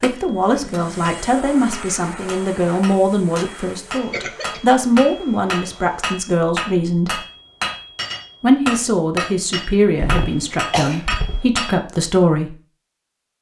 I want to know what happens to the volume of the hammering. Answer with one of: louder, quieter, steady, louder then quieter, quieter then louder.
louder.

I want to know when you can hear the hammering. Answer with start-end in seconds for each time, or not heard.
0.1-11.8.